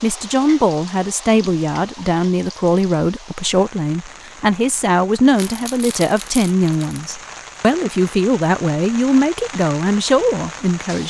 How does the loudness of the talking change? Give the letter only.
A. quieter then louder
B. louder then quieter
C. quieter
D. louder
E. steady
E.